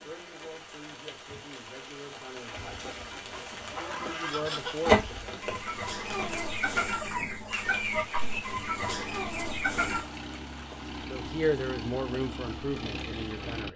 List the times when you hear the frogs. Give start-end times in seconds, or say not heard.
not heard.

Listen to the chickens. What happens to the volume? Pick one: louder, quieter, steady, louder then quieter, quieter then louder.
louder then quieter.